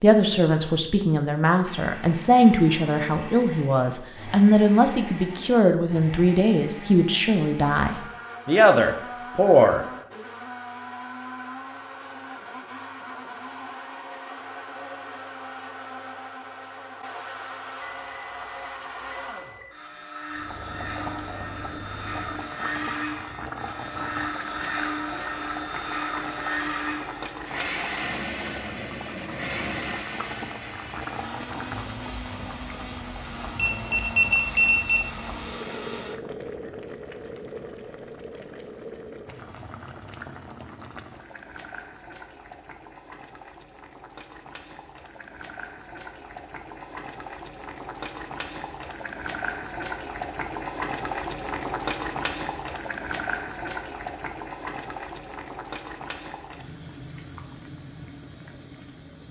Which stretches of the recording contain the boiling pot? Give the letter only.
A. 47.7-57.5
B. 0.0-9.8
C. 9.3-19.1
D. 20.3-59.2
D.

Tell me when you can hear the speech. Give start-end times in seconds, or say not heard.
0.0-9.8.